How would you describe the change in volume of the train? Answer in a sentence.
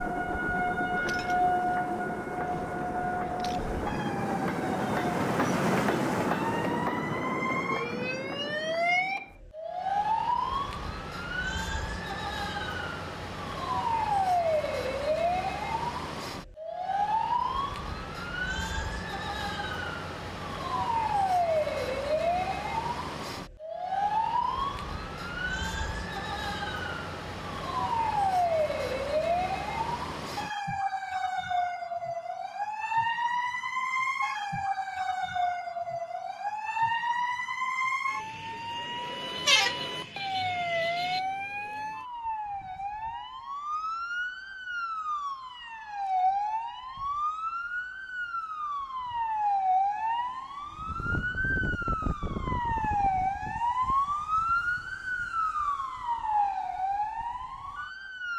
The loudness of the train goes up, then down.